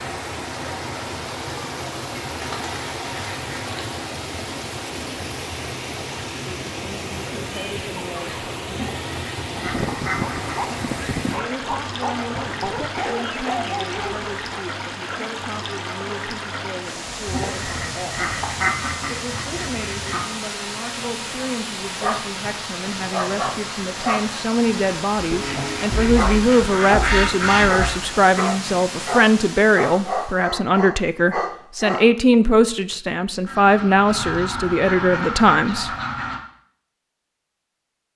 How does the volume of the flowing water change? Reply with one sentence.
The loudness of the flowing water stays about the same.